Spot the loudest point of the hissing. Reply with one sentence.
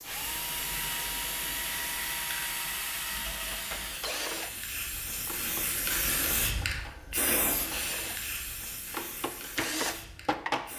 The volume of the hissing peaks at 6 seconds.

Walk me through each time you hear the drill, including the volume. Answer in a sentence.
The drill can be heard from 0.1 to 10.7 s, getting quieter then louder.